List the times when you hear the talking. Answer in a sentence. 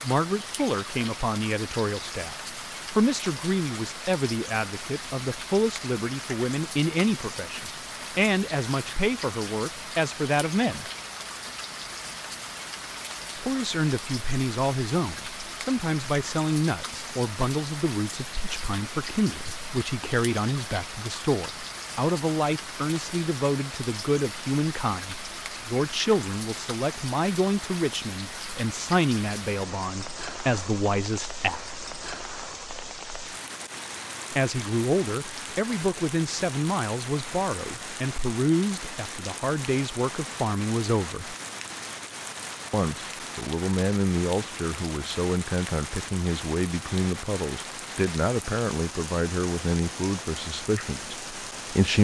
The talking can be heard from 0.0 to 10.8 s, from 13.3 to 31.8 s, from 34.3 to 41.4 s and from 42.7 to 51.9 s.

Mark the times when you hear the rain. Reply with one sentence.
You can hear the rain from 0.0 to 51.9 s.